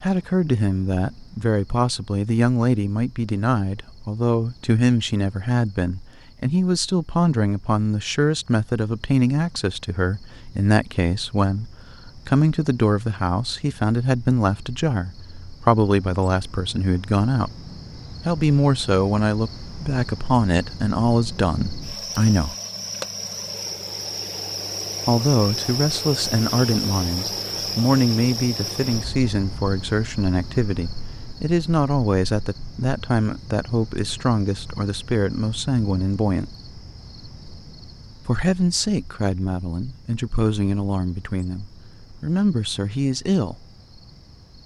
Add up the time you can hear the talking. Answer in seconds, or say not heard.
39 s.